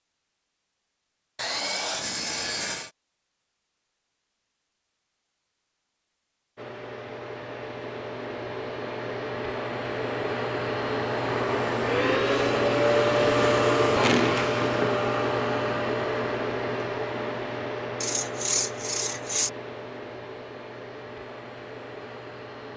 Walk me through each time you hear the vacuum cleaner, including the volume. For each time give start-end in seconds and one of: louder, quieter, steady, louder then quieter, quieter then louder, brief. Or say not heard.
6.5-22.7 louder then quieter.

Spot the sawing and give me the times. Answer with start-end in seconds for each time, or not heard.
1.4-2.9, 18.0-19.5.